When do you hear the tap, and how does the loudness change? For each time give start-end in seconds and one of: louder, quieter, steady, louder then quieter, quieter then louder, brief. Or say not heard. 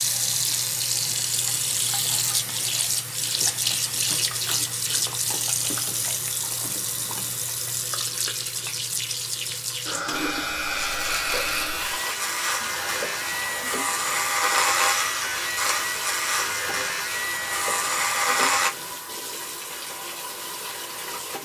0.0-21.3 quieter.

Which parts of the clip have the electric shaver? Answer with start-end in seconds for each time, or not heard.
10.1-18.7.